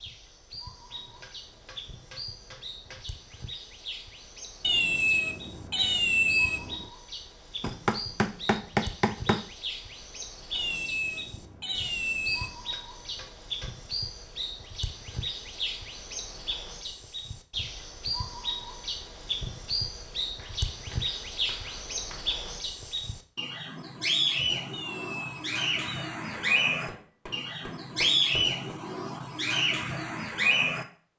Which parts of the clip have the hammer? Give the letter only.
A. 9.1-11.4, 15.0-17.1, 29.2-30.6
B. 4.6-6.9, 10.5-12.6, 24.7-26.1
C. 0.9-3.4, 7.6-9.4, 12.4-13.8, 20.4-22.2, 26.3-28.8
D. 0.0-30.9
C.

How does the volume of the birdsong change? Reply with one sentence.
The volume of the birdsong goes up.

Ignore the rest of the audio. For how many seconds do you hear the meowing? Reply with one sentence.
You can hear the meowing for 6 seconds altogether.